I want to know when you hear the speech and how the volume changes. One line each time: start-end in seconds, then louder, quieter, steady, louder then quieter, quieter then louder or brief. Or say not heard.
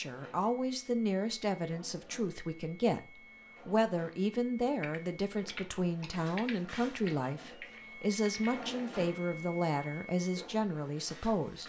0.0-11.6 steady.